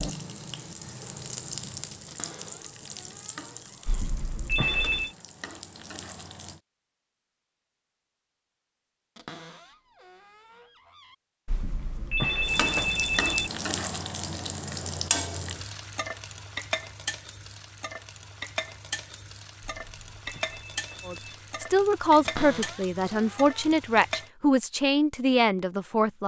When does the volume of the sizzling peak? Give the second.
15 s.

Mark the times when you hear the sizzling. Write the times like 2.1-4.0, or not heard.
0.0-6.6, 12.4-24.3.